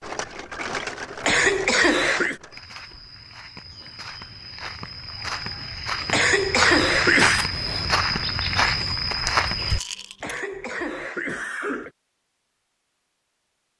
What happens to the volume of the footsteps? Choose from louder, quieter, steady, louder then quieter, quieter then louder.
louder.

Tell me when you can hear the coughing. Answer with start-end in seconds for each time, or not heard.
1.2-2.4, 6.1-7.5, 10.2-11.9.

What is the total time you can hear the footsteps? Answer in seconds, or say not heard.
7 s.